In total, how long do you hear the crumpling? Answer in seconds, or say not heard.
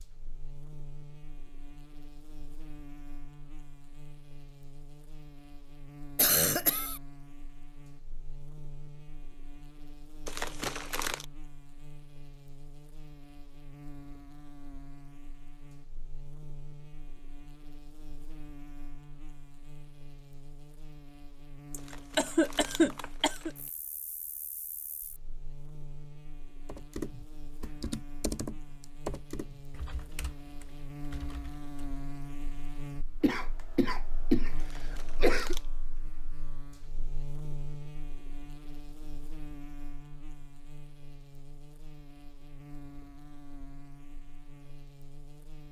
4 s.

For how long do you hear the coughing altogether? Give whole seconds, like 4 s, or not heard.
5 s.